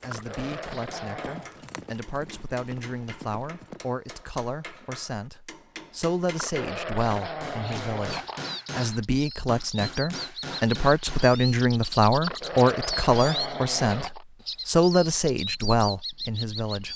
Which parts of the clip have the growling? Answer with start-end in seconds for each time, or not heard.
0.1-1.6, 6.3-8.4, 12.2-14.2.